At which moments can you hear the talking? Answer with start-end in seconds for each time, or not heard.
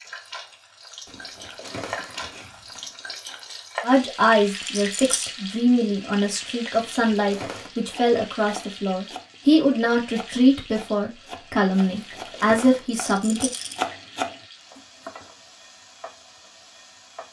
3.8-13.5.